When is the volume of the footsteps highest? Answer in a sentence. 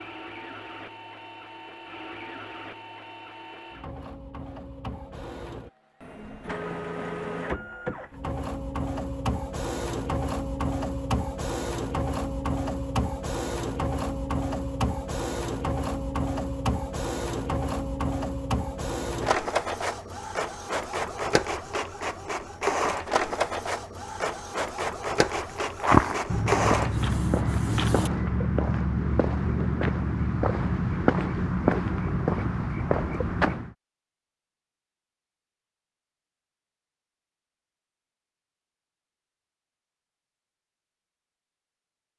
The volume of the footsteps peaks at 26 seconds.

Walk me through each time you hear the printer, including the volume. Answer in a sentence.
The printer can be heard from 0.0 to 28.1 s, getting louder.